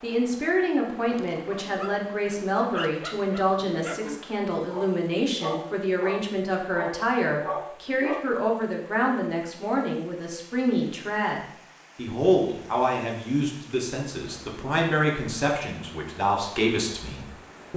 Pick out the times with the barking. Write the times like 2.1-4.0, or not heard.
1.1-8.2.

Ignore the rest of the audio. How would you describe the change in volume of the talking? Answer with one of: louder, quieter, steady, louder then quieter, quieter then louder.
steady.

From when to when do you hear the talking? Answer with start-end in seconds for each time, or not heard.
0.0-17.7.